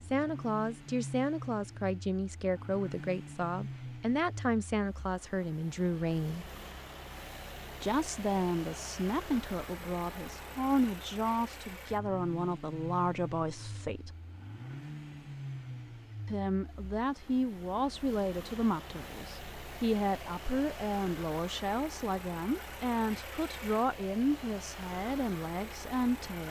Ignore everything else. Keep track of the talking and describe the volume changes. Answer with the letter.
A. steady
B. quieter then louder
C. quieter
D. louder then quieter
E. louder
A.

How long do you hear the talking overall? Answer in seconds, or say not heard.
23 s.